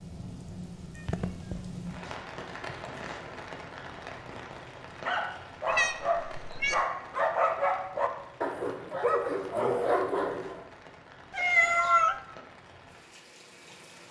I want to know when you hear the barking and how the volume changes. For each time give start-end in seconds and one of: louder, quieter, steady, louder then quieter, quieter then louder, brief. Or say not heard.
5.0-10.7 steady.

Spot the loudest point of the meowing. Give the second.
12 s.